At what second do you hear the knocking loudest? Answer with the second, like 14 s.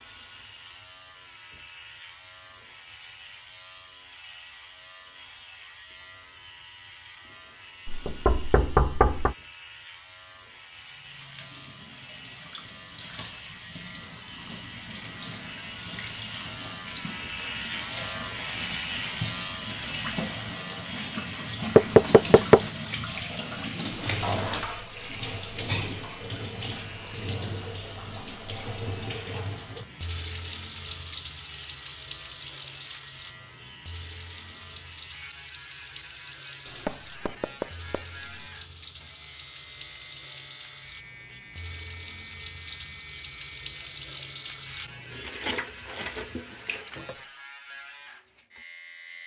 22 s.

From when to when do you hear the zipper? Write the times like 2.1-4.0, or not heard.
23.8-24.6.